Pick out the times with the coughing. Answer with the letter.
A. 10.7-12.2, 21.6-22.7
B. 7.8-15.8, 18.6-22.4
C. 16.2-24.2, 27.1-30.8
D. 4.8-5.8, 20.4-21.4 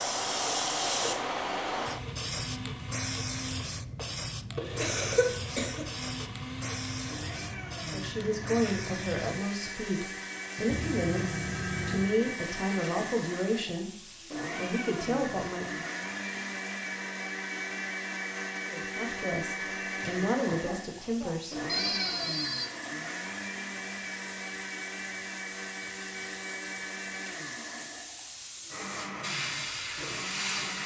D.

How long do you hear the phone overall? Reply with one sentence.
The phone can be heard for 3 seconds in total.